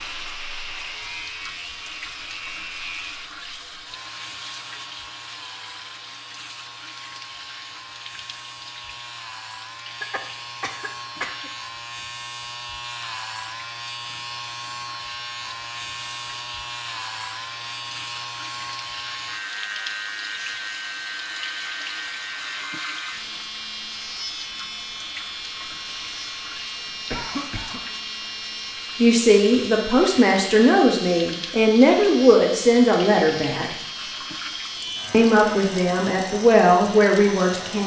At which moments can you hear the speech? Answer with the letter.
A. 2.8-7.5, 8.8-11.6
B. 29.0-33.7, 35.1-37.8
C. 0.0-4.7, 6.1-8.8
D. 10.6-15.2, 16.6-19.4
B.